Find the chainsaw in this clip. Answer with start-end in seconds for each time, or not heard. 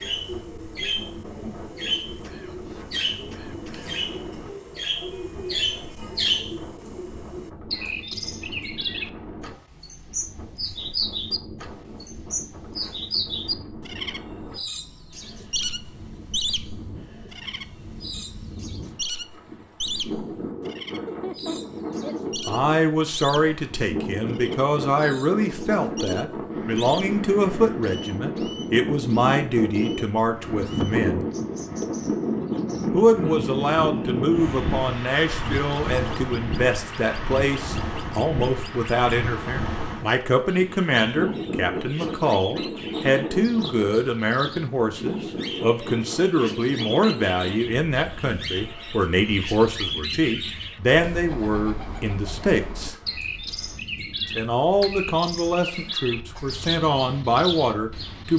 not heard.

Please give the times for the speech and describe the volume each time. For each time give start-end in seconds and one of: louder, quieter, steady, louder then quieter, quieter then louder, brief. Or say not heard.
22.4-31.2 steady
32.9-53.0 steady
54.2-58.3 quieter then louder.